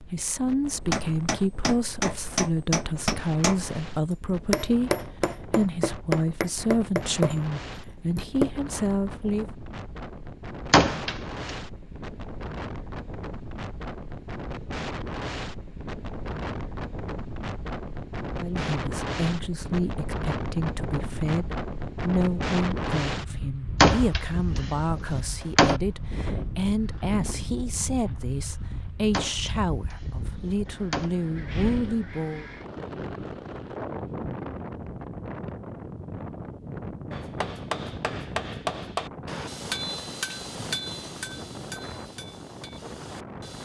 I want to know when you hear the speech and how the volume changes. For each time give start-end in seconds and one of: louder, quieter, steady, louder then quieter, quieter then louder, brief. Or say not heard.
0.0-9.4 steady
18.4-32.5 steady.